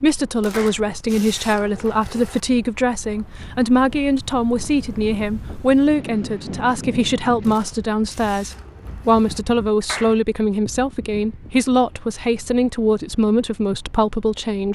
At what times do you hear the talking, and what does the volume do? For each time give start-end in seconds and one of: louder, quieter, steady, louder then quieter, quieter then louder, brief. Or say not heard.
0.0-14.7 steady.